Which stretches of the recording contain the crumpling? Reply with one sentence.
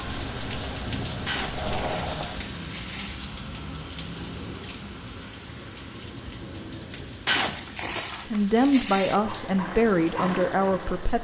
The crumpling can be heard from 1.2 to 3.1 s and from 7.2 to 9.2 s.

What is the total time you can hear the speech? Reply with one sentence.
The speech can be heard for 3 seconds in total.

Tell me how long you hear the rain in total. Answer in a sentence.
The rain can be heard for 11 seconds in total.